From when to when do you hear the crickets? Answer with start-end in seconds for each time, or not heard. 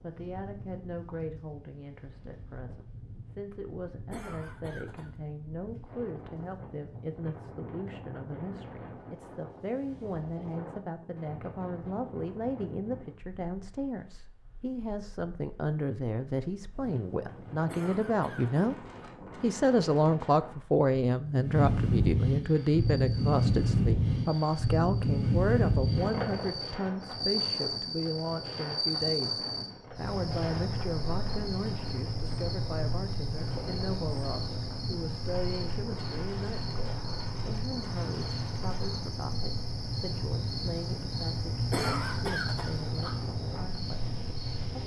22.4-44.8.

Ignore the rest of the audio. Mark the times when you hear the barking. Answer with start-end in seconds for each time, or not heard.
not heard.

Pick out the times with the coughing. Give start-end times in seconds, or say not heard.
4.1-5.1, 17.6-19.1, 41.7-43.1.